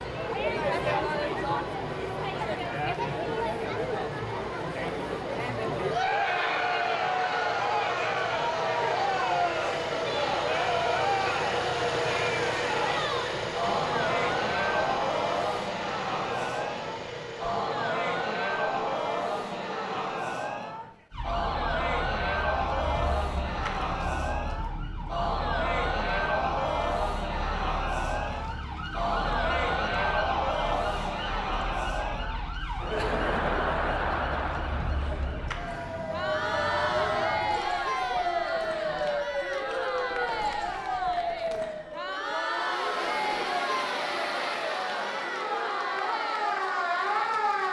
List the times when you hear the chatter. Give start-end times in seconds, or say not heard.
0.0-47.6.